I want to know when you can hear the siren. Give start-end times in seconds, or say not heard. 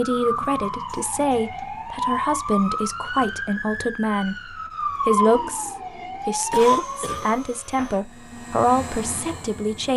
0.0-7.5.